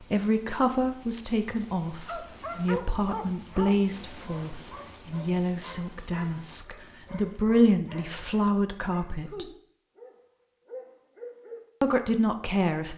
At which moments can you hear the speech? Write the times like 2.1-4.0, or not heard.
0.0-9.4, 11.8-12.9.